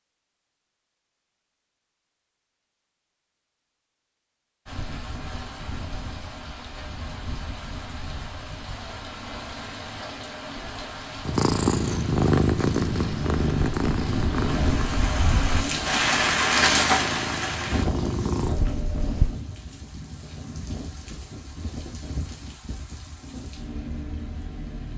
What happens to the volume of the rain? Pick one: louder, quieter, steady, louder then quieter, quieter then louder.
louder then quieter.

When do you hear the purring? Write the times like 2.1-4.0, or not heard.
11.2-19.4.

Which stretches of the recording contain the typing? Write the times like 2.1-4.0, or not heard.
not heard.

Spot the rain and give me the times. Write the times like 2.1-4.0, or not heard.
4.7-24.9.